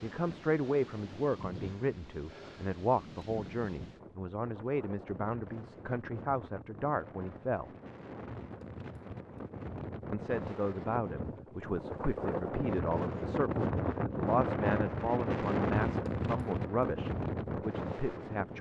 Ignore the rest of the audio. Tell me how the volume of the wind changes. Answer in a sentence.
The volume of the wind goes up.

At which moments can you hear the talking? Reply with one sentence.
You can hear the talking from 0.0 to 7.7 s and from 10.1 to 18.5 s.